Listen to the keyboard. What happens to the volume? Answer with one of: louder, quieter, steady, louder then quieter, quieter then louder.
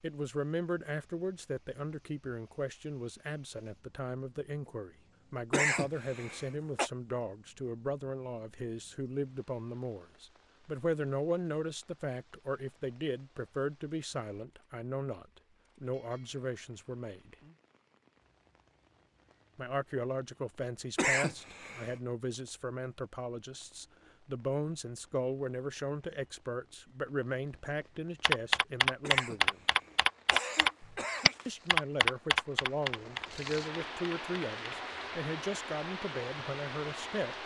quieter.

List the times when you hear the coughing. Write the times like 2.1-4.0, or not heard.
5.5-6.9, 20.9-21.9, 29.0-31.6.